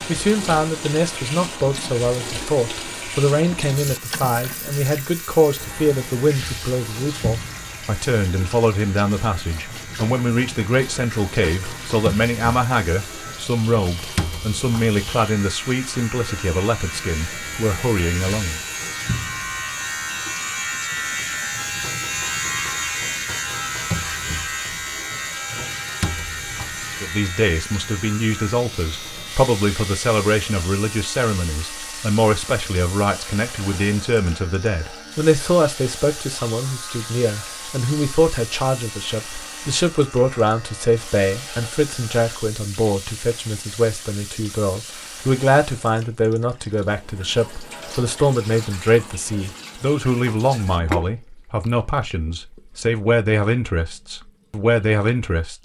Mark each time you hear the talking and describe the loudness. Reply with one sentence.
You can hear the talking from 0.0 to 18.6 s, at a steady volume; and from 27.0 to 55.5 s, at a steady volume.